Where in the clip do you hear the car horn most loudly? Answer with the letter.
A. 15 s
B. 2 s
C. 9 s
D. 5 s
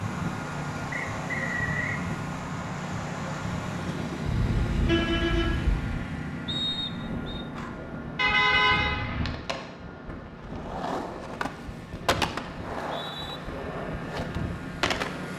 C.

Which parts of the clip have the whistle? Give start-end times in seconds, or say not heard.
0.9-2.0, 6.5-7.5, 12.6-13.4.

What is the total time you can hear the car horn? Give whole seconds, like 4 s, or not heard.
3 s.